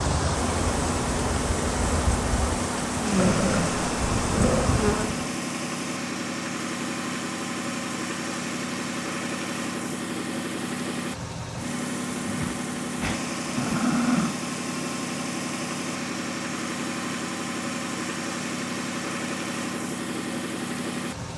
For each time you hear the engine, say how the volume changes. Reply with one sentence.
You can hear the engine from 0.0 to 21.3 s, at a steady volume.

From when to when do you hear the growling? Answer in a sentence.
The growling can be heard from 3.1 to 4.8 s and from 12.2 to 14.3 s.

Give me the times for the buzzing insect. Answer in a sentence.
The buzzing insect can be heard from 0.0 to 5.3 s.